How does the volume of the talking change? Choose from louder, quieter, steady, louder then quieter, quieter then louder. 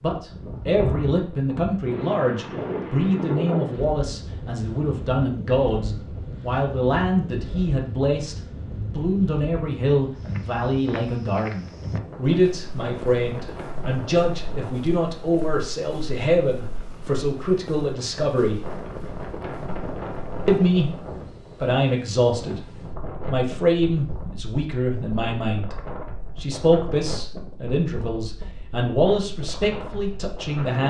steady.